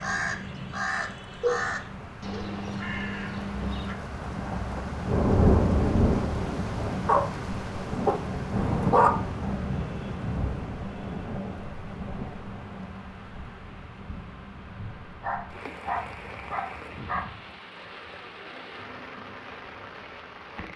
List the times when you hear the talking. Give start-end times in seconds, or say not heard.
not heard.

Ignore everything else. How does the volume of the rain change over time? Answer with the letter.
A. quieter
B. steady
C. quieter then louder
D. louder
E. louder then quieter
E.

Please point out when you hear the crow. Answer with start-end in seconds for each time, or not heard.
0.0-4.0.